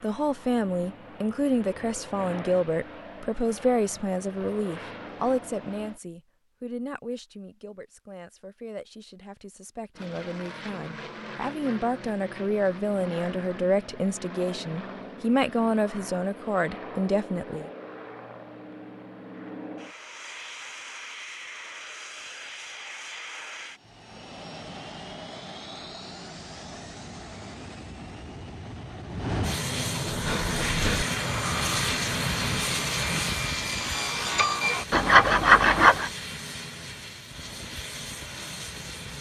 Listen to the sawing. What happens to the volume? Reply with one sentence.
The loudness of the sawing goes up.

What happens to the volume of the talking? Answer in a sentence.
The loudness of the talking goes down, then up.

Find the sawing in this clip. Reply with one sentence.
You can hear the sawing from 30.1 to 36.1 s.